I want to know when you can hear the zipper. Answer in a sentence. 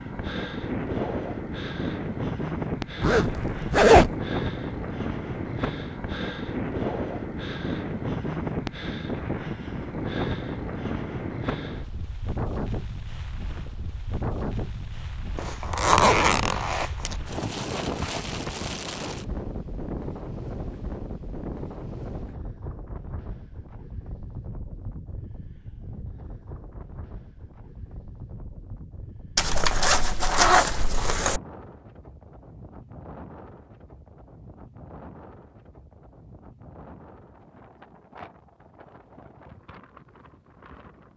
The zipper can be heard from 3.0 to 4.1 s, from 15.3 to 17.1 s and from 29.4 to 31.4 s.